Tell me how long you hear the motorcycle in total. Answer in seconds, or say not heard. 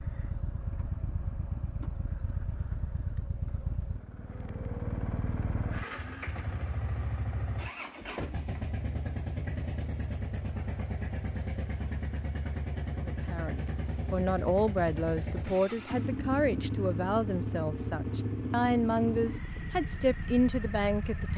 21 s.